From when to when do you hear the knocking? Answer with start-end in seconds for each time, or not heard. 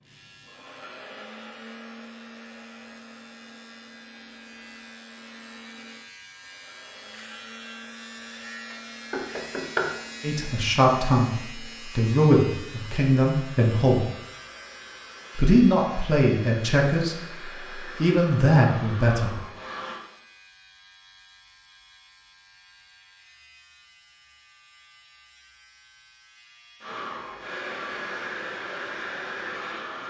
8.7-9.9.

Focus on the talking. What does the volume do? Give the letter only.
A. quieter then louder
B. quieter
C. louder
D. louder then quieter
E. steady
E.